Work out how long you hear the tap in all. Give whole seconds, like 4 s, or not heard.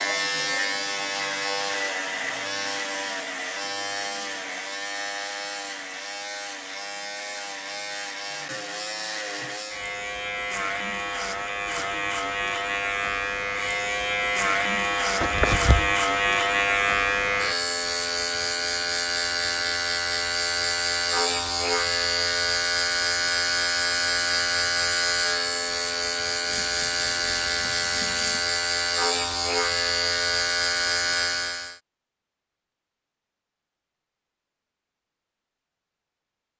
2 s.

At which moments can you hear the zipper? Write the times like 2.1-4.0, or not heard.
15.2-15.9.